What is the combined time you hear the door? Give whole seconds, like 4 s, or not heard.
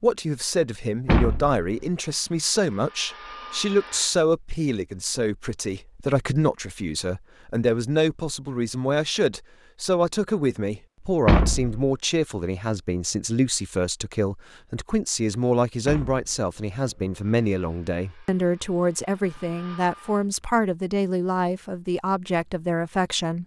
3 s.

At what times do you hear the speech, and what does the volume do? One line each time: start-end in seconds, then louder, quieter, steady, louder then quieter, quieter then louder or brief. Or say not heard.
0.0-23.4 steady.